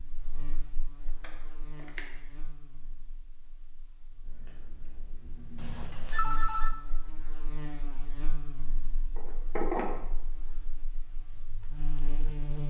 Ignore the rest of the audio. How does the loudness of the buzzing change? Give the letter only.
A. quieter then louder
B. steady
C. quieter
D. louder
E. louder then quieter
A.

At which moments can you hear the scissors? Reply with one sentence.
You can hear the scissors from 1.1 to 2.0 s, from 4.2 to 6.1 s and from 9.2 to 9.8 s.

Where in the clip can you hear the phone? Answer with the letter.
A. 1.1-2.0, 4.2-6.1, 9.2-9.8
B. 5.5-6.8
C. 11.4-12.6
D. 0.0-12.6
B.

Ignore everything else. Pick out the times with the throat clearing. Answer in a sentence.
You can't hear the throat clearing here.